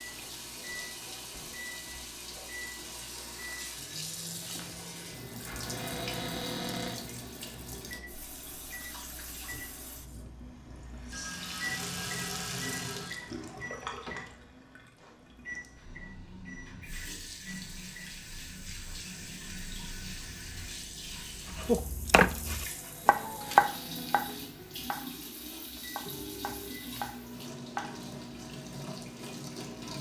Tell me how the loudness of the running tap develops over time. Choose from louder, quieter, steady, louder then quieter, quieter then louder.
steady.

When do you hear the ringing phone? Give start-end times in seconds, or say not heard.
11.1-13.2.